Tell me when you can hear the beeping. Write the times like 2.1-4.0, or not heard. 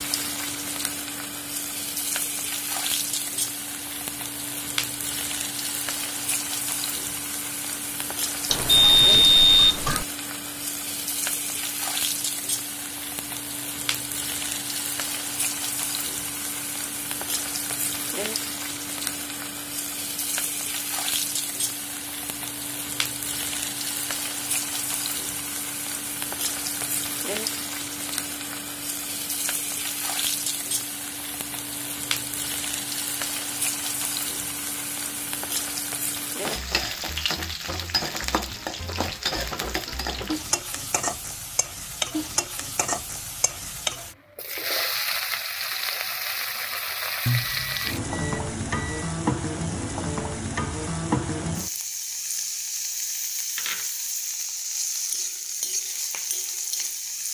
8.5-10.1, 47.2-49.1.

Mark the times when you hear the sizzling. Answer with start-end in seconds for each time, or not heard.
0.0-57.2.